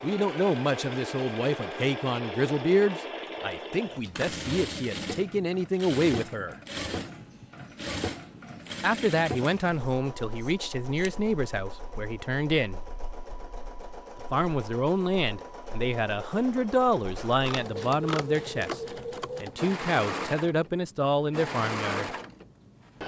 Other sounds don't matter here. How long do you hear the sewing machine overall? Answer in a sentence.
You can hear the sewing machine for 23 seconds altogether.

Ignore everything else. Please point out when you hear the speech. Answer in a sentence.
You can hear the speech from 0.0 to 6.5 s, from 8.8 to 12.8 s, from 14.3 to 18.8 s and from 19.4 to 22.1 s.